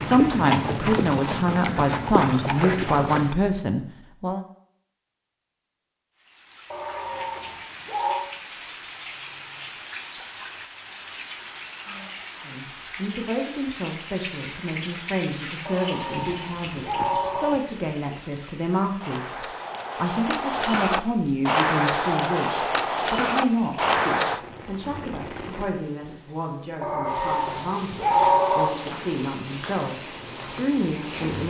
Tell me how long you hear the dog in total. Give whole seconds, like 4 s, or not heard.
5 s.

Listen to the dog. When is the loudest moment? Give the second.
28 s.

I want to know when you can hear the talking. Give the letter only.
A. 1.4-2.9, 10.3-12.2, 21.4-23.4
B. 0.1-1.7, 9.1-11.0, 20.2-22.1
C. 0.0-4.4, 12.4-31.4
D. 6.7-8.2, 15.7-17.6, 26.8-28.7
C.